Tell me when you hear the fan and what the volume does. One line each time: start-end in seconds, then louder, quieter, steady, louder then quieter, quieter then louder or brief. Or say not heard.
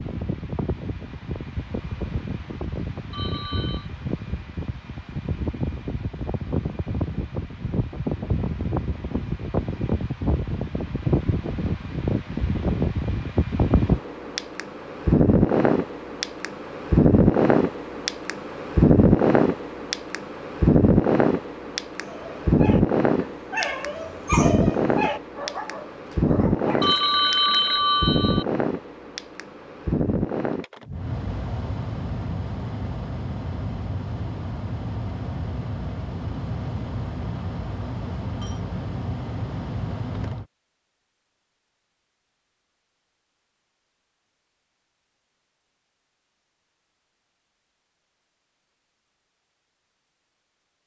0.0-40.5 louder then quieter.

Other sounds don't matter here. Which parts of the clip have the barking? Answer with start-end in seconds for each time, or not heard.
22.0-27.1.